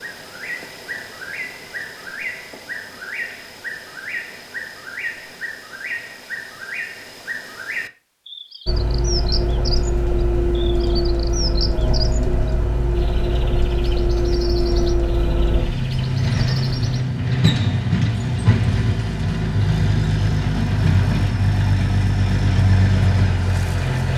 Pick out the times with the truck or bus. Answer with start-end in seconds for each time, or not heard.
8.7-24.1.